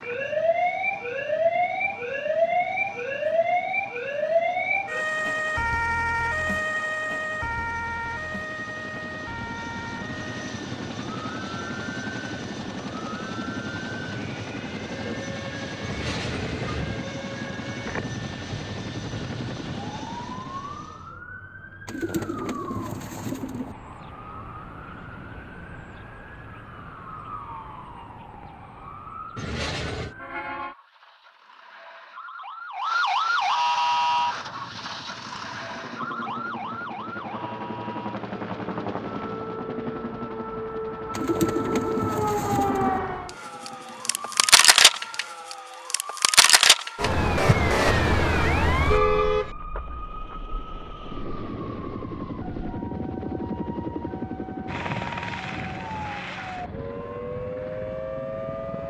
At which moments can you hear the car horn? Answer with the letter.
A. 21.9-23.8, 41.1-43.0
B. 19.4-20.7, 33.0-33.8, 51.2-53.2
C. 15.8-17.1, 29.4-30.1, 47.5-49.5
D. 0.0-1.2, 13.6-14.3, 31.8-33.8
C.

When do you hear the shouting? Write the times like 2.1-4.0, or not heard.
not heard.